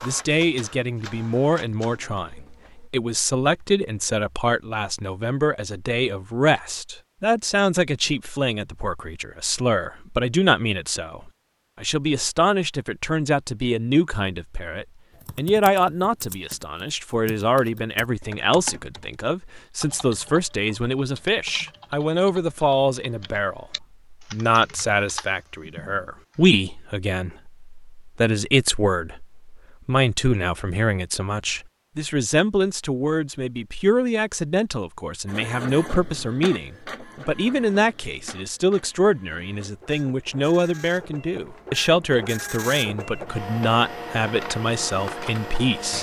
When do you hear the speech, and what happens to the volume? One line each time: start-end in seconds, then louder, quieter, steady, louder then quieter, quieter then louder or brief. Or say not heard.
0.0-45.9 steady.